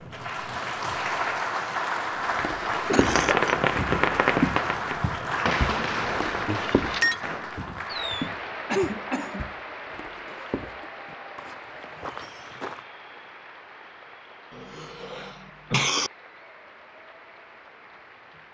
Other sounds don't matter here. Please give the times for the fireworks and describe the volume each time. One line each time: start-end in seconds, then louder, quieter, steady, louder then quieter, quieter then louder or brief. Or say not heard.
3.0-8.3 quieter.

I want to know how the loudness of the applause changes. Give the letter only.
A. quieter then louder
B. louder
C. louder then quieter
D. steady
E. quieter
E.